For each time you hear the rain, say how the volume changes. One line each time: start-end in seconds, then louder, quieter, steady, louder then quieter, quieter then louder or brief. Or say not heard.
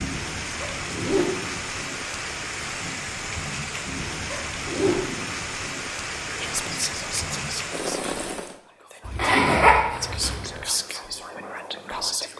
0.0-8.6 steady.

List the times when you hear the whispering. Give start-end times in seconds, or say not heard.
6.2-12.3.